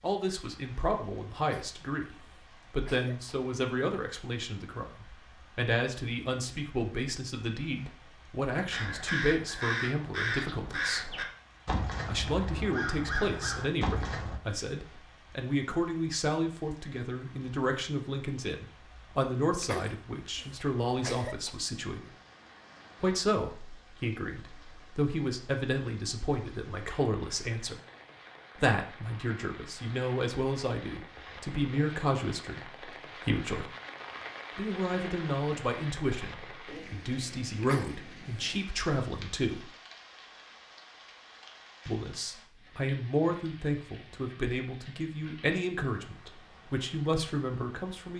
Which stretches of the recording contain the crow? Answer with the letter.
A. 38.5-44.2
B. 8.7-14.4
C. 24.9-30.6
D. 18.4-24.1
B.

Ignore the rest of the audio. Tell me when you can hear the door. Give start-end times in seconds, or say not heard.
not heard.